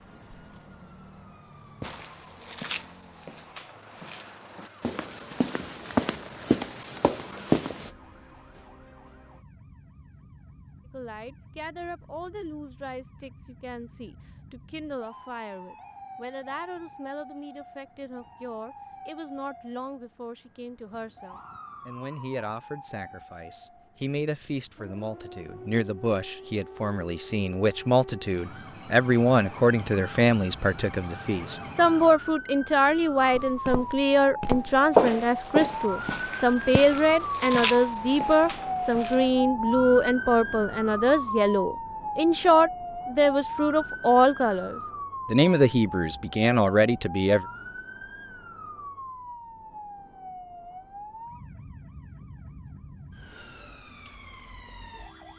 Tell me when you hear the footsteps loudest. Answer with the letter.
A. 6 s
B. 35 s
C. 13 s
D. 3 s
B.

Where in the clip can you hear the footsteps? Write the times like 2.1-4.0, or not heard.
1.8-7.9, 33.3-39.4.